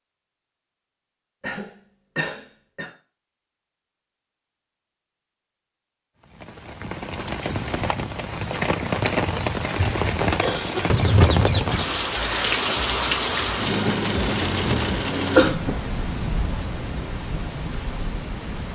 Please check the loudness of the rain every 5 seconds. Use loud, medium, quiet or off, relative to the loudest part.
off, medium, loud, medium.